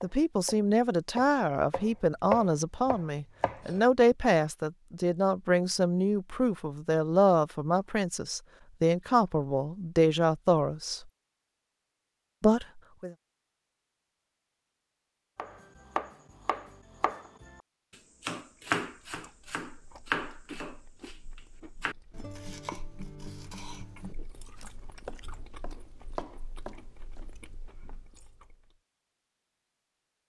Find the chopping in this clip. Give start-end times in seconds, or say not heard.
0.0-3.8, 15.3-17.6, 18.2-27.4.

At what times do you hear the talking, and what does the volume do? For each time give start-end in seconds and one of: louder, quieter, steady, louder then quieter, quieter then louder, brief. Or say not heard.
0.0-11.0 steady
12.4-13.2 brief.